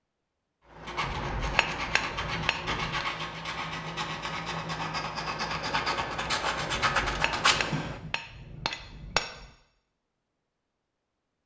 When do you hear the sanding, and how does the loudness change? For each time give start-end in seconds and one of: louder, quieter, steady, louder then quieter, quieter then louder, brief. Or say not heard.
0.7-8.0 louder.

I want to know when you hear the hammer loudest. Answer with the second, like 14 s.
9 s.